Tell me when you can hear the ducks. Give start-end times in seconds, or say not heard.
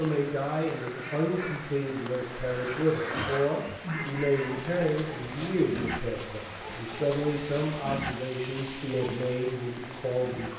0.0-4.5.